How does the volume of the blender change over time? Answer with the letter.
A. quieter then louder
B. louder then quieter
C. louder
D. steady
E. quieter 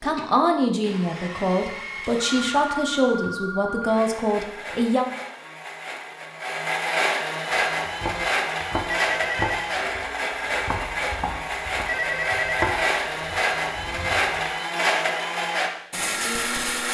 C.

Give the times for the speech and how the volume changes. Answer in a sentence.
You can hear the speech from 0.0 to 5.0 s, at a steady volume.